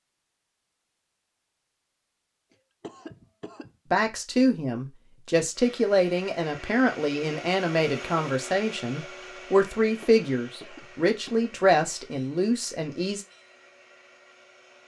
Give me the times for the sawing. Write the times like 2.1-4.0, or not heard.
not heard.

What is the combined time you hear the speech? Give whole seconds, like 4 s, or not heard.
9 s.